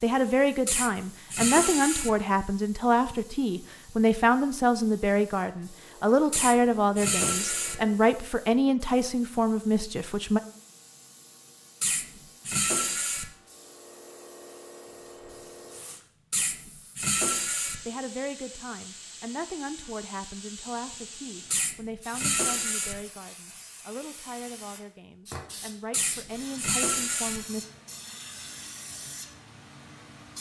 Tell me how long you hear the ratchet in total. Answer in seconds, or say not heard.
9 s.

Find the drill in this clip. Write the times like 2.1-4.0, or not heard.
not heard.